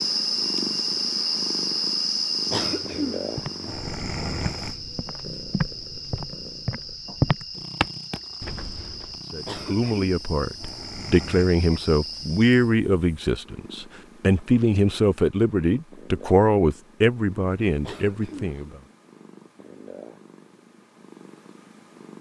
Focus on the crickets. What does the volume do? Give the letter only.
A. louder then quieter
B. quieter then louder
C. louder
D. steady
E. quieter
E.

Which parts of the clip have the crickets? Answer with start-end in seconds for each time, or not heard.
0.0-12.8.